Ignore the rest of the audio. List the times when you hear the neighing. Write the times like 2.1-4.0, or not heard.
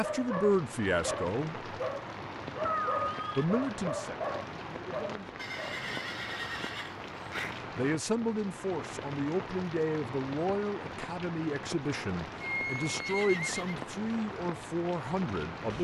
2.6-3.5, 5.3-7.6, 12.4-13.8.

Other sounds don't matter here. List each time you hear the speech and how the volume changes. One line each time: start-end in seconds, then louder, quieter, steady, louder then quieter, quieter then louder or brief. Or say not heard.
0.0-1.6 brief
3.4-5.3 brief
7.8-15.8 steady.